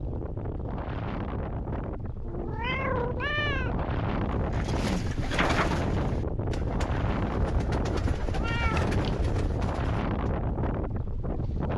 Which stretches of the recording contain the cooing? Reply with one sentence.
You can hear the cooing from 4.3 to 10.3 s.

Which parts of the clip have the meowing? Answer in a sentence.
The meowing can be heard from 2.2 to 3.9 s and from 8.2 to 9.2 s.